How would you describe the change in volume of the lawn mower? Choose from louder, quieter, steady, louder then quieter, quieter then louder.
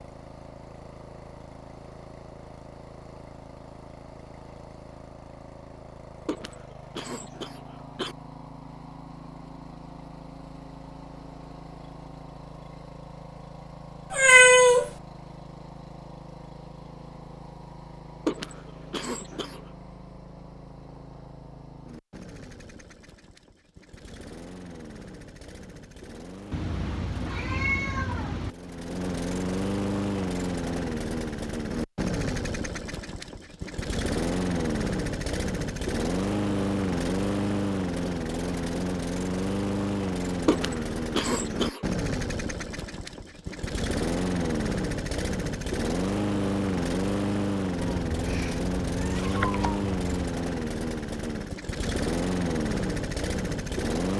louder.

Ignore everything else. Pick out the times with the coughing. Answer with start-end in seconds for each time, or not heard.
6.2-8.2, 18.2-19.6, 40.5-41.9.